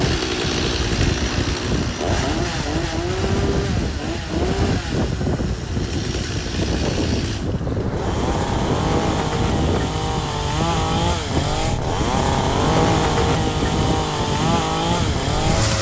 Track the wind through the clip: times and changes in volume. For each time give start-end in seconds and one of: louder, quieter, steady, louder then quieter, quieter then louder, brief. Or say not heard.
0.0-15.7 steady.